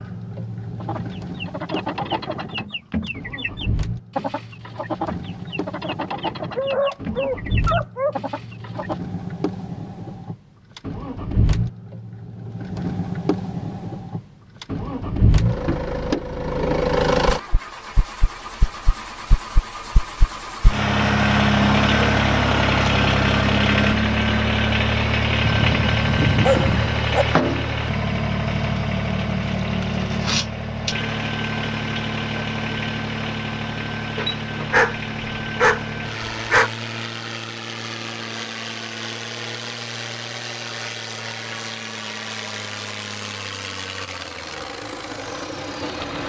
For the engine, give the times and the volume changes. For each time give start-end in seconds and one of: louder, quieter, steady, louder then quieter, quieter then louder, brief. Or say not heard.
0.0-46.2 louder then quieter.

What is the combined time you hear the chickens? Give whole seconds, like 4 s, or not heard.
8 s.